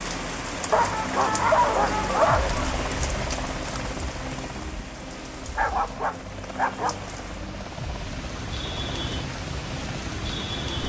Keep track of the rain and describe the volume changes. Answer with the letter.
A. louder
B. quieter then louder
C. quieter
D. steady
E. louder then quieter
B.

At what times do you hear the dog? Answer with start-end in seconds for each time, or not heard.
0.7-2.7, 5.5-7.1.